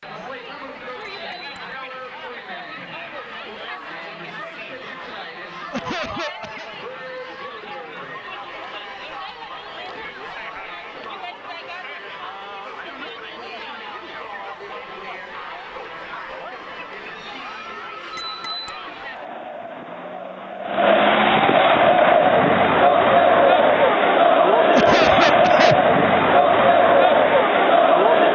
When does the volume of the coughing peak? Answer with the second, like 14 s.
25 s.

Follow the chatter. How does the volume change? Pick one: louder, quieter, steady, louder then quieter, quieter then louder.
louder.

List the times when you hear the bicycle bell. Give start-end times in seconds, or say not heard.
1.1-1.8, 18.1-18.8.